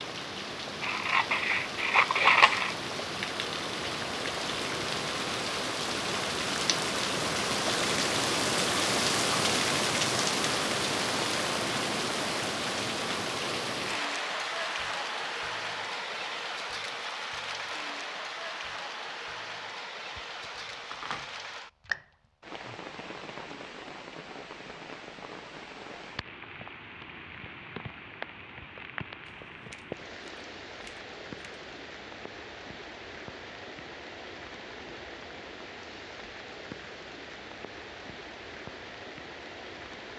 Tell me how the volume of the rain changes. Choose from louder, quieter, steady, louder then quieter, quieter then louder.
quieter.